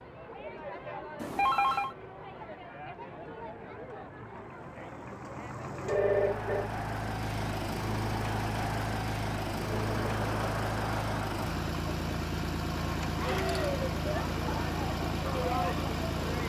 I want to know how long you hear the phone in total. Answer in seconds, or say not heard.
2 s.